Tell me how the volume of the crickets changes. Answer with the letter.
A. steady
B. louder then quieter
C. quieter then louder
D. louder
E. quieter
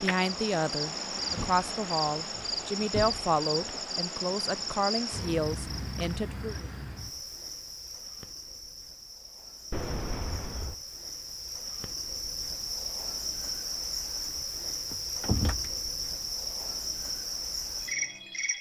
C.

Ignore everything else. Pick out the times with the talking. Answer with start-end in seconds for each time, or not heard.
0.0-6.7.